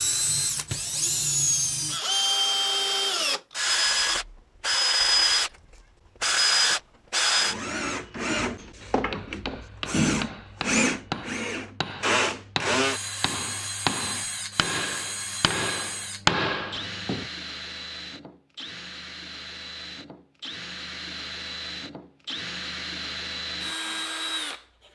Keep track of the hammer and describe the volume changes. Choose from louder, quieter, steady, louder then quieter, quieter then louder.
louder.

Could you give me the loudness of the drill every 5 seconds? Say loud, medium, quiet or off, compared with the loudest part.
loud, loud, loud, quiet, medium.